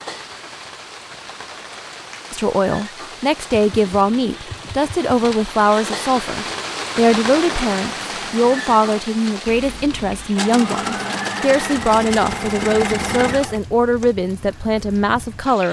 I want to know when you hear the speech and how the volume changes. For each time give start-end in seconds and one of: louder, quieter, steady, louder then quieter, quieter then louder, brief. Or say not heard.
2.3-15.6 steady.